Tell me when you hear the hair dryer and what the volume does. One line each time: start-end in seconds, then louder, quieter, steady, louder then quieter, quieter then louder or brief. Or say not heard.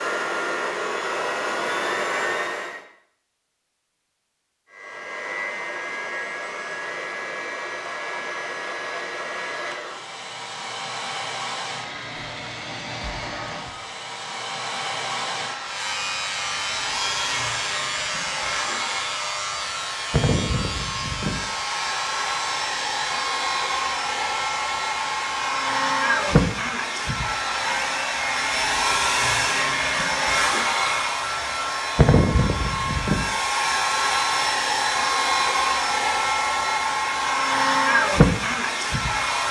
0.0-2.9 brief
4.7-39.4 louder.